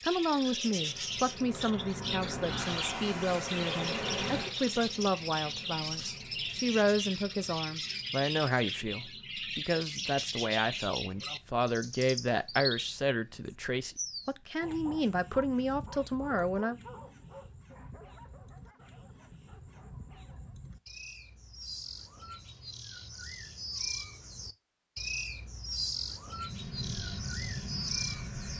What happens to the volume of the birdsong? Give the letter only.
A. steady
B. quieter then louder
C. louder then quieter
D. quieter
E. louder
B.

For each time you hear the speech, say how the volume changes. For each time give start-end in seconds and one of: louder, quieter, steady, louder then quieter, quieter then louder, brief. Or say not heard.
0.0-16.8 steady.